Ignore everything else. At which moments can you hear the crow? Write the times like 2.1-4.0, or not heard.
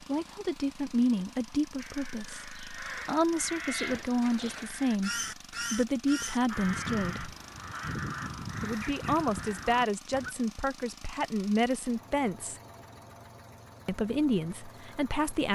1.8-10.3.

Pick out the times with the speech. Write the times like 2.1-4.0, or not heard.
0.1-7.3, 8.6-12.6, 13.8-15.5.